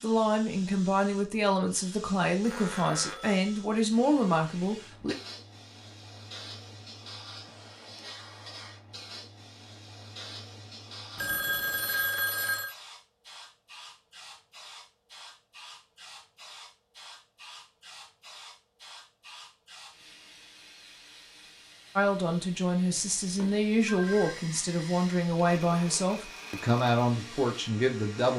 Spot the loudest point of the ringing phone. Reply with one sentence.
The loudest moment of the ringing phone is at 12 seconds.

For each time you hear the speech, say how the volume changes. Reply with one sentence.
You can hear the speech from 0.0 to 5.2 s, at a steady volume; and from 21.9 to 28.3 s, at a steady volume.